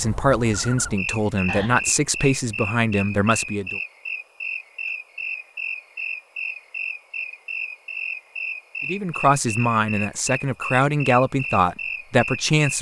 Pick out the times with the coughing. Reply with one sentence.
You can't hear the coughing here.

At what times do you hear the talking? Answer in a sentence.
The talking can be heard from 0.0 to 3.8 s and from 8.8 to 12.7 s.